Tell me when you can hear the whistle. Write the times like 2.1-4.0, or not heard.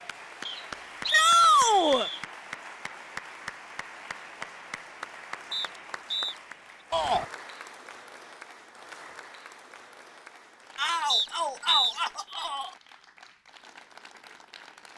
0.5-2.2, 5.5-6.3, 11.1-11.9.